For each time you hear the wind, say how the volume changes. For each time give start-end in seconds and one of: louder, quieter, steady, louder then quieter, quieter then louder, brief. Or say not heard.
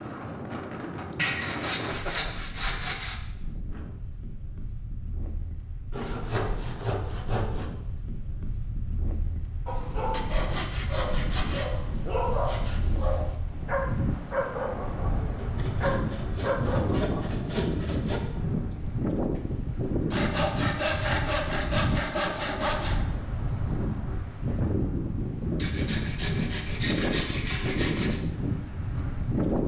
0.0-29.6 louder.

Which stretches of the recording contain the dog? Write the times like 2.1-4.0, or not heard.
9.7-17.5.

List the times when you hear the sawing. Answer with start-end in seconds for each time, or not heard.
1.1-3.2, 5.9-7.7, 10.1-12.8, 15.3-18.2, 20.1-23.0, 25.6-28.2.